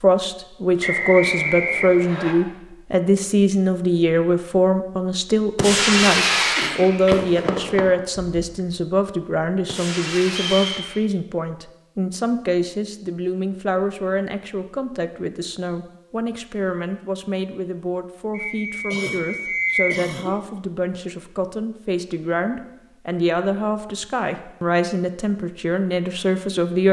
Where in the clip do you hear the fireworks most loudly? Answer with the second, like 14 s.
6 s.